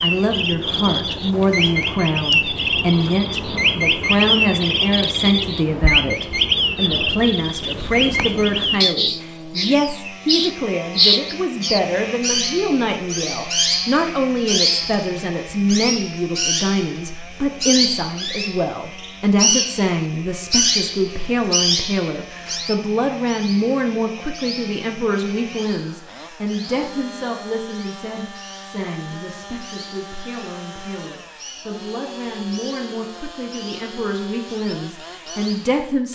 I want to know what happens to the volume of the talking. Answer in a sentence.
The loudness of the talking goes down.